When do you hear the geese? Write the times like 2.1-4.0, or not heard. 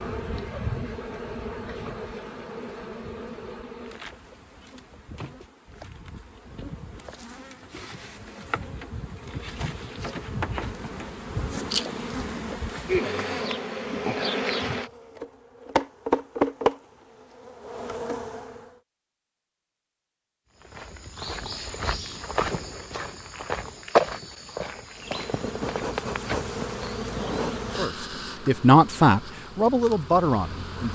not heard.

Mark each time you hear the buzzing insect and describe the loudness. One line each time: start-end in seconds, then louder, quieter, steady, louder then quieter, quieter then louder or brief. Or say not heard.
0.0-18.7 quieter then louder
24.9-30.9 quieter.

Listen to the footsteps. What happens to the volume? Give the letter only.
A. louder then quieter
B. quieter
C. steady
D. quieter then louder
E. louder
A.